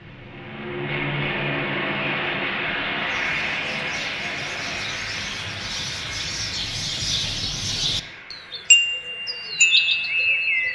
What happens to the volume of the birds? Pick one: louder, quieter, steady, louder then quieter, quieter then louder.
louder.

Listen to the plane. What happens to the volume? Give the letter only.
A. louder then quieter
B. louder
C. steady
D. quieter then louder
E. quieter
E.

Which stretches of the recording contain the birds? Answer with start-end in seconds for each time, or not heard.
3.0-10.6.